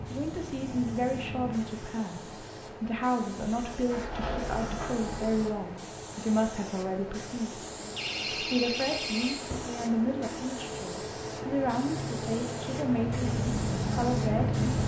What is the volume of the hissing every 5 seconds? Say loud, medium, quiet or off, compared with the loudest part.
medium, medium, loud.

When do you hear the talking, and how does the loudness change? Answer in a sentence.
The talking can be heard from 0.1 to 7.7 s, at a steady volume; and from 8.3 to 14.7 s, at a steady volume.